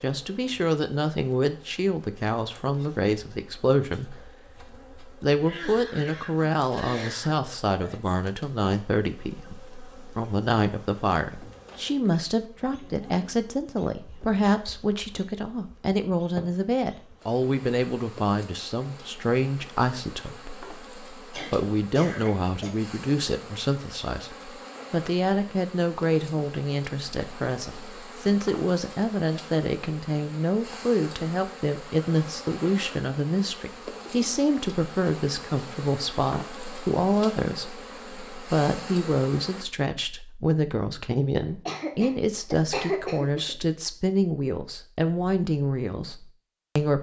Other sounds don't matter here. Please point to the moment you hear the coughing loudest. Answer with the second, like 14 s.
43 s.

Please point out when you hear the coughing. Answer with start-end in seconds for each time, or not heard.
5.4-7.3, 21.3-22.7, 41.6-43.5.